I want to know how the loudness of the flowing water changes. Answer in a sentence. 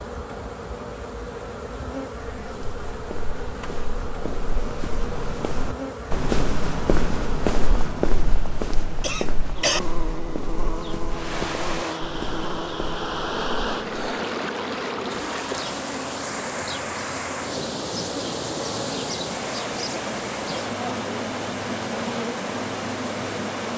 The loudness of the flowing water stays about the same.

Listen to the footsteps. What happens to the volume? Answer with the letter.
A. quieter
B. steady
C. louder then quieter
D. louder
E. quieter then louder
C.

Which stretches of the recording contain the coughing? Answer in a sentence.
You can hear the coughing from 9.0 to 9.8 s.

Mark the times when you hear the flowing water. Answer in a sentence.
You can hear the flowing water from 11.1 to 23.7 s.